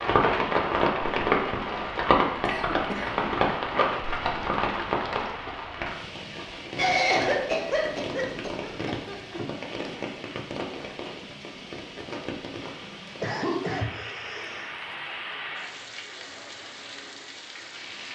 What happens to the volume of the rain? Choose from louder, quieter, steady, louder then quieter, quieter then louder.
quieter.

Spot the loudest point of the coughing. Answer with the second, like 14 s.
7 s.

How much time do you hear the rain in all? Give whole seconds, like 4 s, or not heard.
18 s.